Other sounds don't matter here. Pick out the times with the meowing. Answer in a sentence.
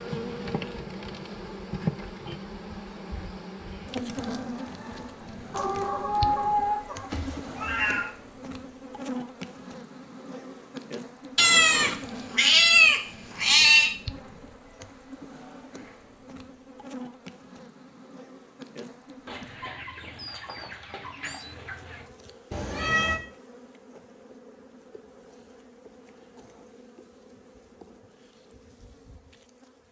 You can hear the meowing from 7.1 to 8.1 s, from 11.3 to 13.9 s and from 22.5 to 23.2 s.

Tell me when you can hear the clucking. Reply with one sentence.
The clucking can be heard from 5.5 to 7.1 s and from 19.2 to 22.1 s.